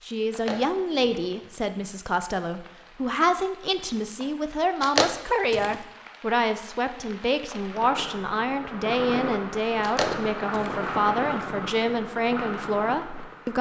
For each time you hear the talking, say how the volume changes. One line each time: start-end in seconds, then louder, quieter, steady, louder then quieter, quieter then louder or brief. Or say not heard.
0.0-13.5 steady.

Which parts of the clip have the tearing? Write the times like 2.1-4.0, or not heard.
0.3-1.2, 4.8-5.8, 9.8-11.4.